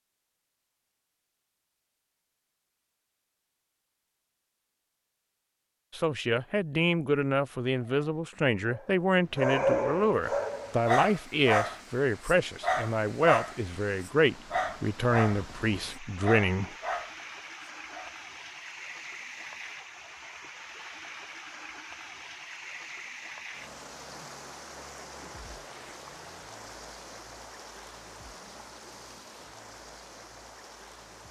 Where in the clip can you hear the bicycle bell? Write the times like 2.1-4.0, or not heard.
not heard.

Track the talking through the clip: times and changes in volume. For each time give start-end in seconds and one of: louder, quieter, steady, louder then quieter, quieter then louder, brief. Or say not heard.
5.9-16.8 steady.